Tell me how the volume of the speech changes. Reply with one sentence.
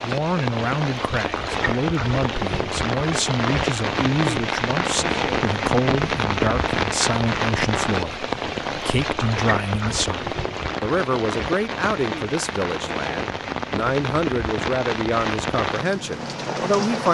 The volume of the speech stays about the same.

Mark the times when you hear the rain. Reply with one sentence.
The rain can be heard from 0.0 to 17.1 s.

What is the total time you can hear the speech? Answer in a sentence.
You can hear the speech for 17 seconds altogether.